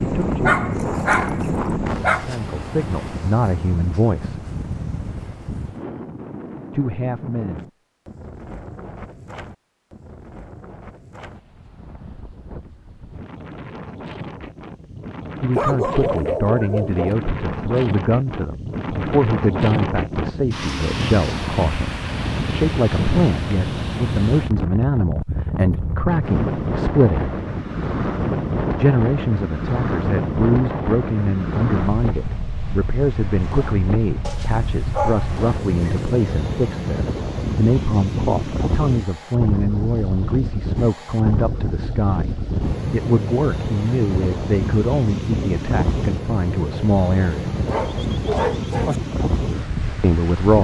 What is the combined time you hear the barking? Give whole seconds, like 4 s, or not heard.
7 s.